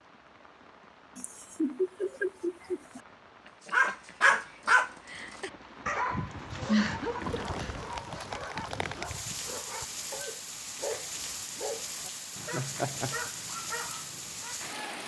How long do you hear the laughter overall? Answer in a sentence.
The laughter can be heard for 4 seconds in total.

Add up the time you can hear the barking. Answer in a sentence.
You can hear the barking for 11 seconds altogether.